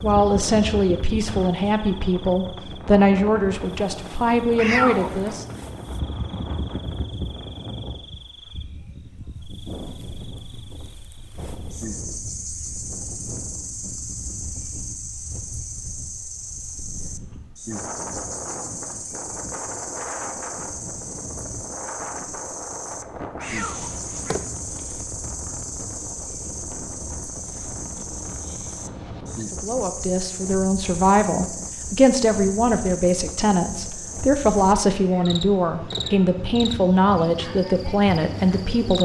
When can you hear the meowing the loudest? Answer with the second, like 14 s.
5 s.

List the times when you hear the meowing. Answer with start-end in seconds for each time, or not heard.
4.5-5.4, 23.4-24.4, 35.0-36.3.